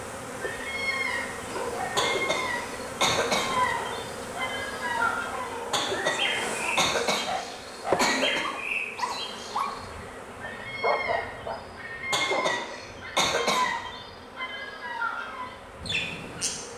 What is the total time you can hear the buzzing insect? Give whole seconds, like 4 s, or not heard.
17 s.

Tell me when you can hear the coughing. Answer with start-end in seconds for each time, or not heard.
1.9-3.5, 5.7-8.4, 12.1-13.7.